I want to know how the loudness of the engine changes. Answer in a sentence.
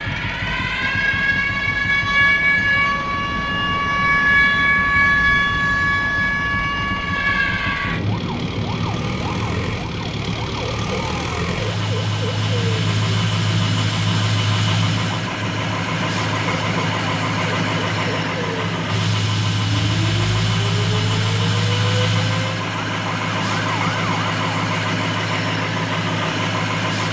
The loudness of the engine goes up.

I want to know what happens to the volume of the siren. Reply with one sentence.
The volume of the siren goes down.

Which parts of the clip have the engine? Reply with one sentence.
The engine can be heard from 0.0 to 27.0 s.